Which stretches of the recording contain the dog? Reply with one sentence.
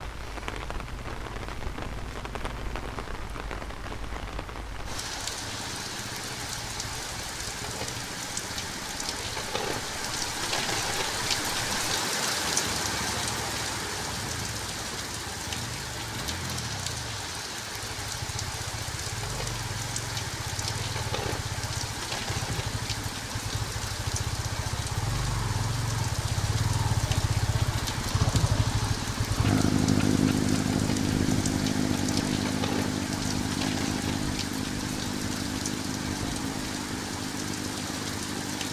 The dog can't be heard in this clip.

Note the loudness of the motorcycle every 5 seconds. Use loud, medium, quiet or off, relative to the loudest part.
quiet, quiet, quiet, quiet, medium, loud, loud, medium.